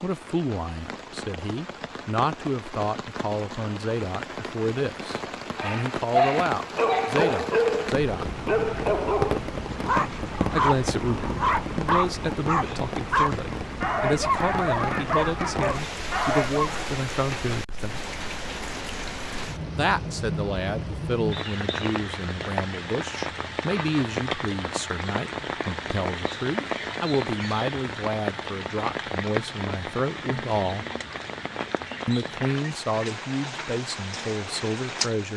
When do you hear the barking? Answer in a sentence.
You can hear the barking from 5.5 to 16.9 s.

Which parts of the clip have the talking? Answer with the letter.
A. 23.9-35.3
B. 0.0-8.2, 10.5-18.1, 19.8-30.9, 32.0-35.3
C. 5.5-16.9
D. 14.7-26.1
B.